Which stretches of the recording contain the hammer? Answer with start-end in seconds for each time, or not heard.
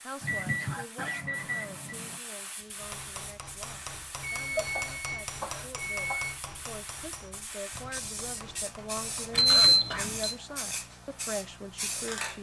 2.8-9.4.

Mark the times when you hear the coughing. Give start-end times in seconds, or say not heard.
0.2-2.2, 4.5-6.3, 9.5-10.1.